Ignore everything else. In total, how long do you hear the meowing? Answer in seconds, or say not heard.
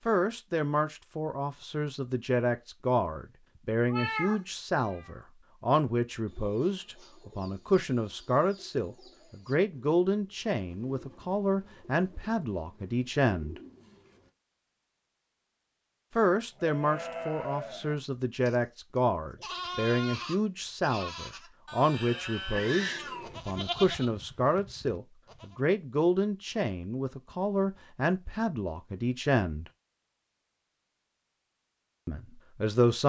2 s.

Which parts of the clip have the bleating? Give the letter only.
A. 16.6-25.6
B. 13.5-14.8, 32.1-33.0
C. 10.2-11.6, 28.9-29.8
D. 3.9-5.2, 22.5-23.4
A.